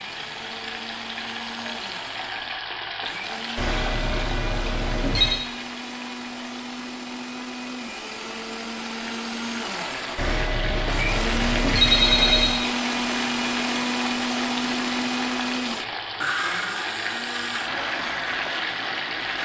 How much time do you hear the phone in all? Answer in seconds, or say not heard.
4 s.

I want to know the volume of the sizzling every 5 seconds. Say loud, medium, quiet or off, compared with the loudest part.
loud, medium, loud, loud.